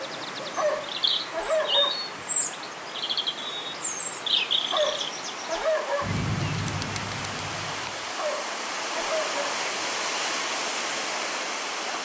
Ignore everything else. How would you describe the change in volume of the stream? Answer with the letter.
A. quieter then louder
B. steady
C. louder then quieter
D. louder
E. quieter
D.